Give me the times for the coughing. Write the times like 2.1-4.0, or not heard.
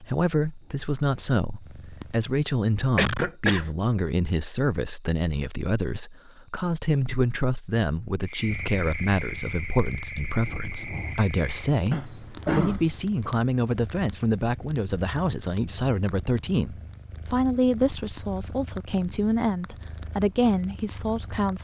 3.0-3.7, 11.9-12.9.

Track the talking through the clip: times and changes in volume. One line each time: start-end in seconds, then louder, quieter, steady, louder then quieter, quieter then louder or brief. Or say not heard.
0.0-21.5 steady.